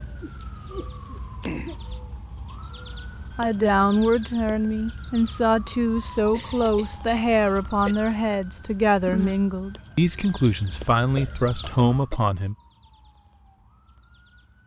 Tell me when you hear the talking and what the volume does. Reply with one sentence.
The talking can be heard from 3.4 to 12.6 s, at a steady volume.